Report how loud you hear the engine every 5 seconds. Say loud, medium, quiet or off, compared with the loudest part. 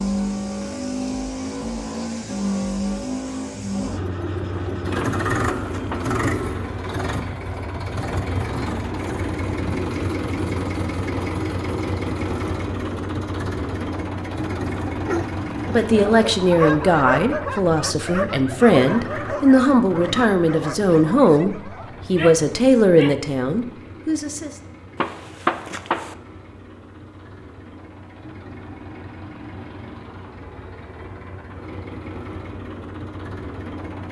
loud, loud, loud, medium, quiet, quiet, medium.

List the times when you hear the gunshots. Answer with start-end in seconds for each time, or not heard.
5.0-6.2, 25.0-26.1.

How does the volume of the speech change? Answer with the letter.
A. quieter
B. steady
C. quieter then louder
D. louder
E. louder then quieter
B.